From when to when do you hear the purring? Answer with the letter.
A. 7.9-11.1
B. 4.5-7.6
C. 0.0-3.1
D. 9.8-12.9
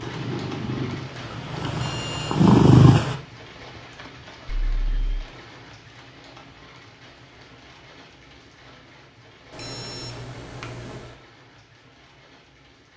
C.